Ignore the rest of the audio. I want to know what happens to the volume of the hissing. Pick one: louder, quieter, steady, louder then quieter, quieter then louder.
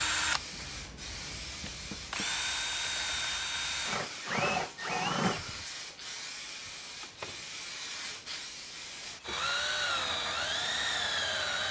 steady.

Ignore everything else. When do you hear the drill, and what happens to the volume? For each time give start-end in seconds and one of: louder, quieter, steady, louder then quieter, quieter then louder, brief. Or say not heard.
0.0-5.7 louder
9.2-11.6 brief.